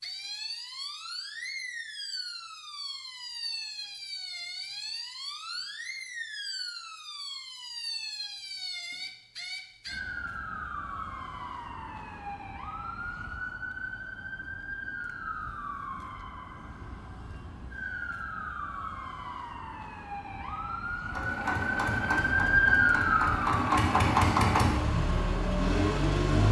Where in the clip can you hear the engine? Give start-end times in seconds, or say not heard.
21.1-26.4.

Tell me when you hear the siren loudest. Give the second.
23 s.